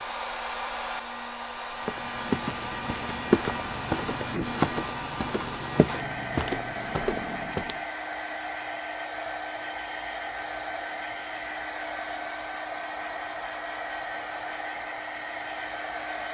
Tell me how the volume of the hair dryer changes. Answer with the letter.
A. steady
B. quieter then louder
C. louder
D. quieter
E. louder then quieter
A.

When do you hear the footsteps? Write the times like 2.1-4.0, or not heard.
1.9-7.8.